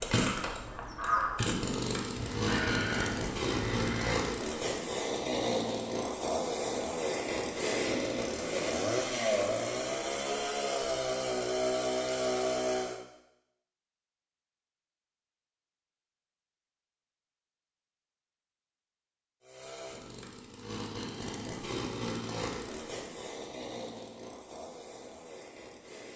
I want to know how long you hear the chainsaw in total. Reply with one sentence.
You can hear the chainsaw for 20 seconds altogether.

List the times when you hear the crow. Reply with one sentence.
The crow can be heard from 0.0 to 4.2 s.